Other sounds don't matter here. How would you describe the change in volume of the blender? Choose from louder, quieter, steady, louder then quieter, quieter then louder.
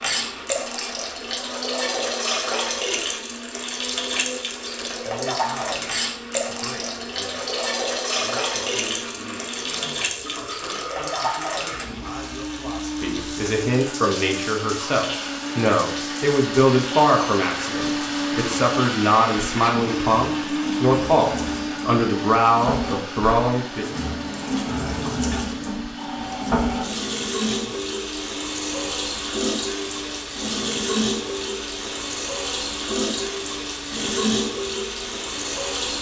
louder then quieter.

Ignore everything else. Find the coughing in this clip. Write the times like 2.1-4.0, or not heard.
not heard.